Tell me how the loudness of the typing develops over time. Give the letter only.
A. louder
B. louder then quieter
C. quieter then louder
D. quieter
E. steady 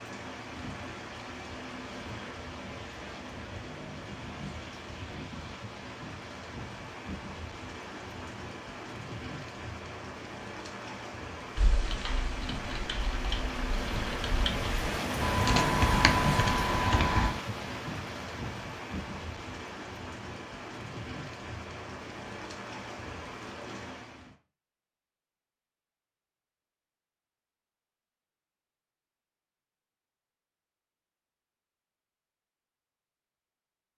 A.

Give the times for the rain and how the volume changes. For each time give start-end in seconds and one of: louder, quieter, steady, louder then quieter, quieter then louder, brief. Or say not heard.
0.0-24.4 louder then quieter.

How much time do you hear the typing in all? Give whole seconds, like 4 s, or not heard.
6 s.